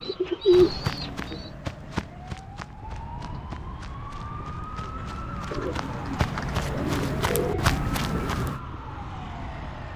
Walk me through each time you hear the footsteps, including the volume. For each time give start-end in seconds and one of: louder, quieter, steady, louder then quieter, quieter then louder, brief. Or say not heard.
0.5-8.6 quieter then louder.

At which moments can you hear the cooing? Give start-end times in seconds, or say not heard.
0.0-1.5, 5.5-8.2.